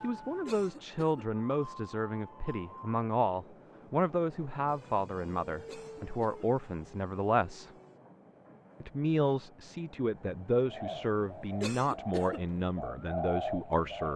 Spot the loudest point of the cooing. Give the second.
13 s.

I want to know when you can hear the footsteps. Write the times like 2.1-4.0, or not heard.
not heard.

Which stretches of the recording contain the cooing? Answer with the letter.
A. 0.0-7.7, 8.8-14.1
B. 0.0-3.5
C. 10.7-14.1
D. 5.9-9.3
C.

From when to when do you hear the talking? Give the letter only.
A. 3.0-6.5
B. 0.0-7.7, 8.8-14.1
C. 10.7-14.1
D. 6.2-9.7
B.